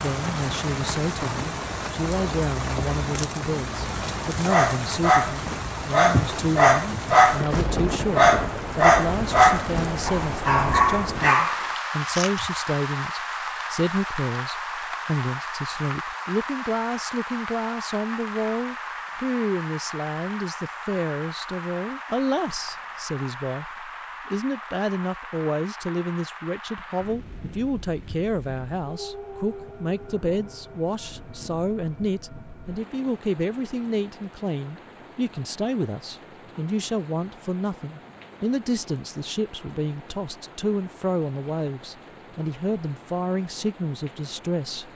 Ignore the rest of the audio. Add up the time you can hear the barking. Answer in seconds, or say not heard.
8 s.